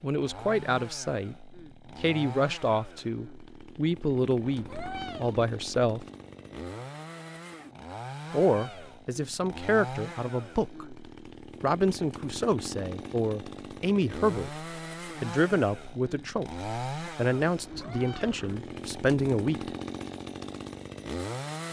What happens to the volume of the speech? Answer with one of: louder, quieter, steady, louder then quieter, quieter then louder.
steady.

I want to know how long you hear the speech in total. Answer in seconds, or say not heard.
17 s.